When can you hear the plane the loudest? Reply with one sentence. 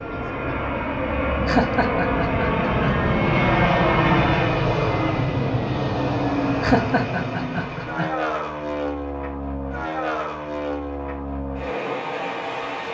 The volume of the plane peaks at 4 seconds.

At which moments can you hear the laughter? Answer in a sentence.
The laughter can be heard from 1.4 to 2.9 s and from 6.6 to 8.1 s.